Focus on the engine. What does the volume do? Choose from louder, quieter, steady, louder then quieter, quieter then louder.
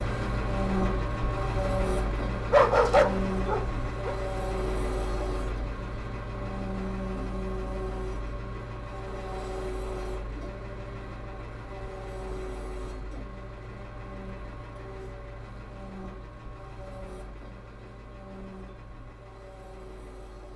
quieter.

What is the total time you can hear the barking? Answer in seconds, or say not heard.
2 s.